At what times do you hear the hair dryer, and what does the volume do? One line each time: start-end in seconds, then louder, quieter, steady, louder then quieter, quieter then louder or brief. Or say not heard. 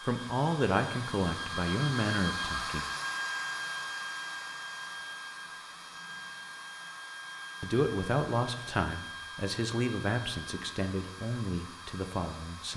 0.0-12.7 quieter.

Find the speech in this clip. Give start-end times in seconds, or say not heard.
0.0-2.9, 7.6-12.7.